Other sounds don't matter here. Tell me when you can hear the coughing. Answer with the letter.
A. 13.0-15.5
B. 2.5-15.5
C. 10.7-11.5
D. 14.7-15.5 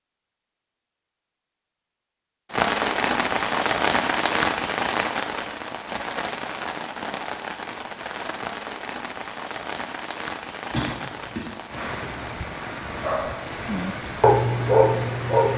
C.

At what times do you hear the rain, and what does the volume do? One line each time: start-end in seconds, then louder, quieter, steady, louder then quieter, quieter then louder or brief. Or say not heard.
2.5-15.5 quieter.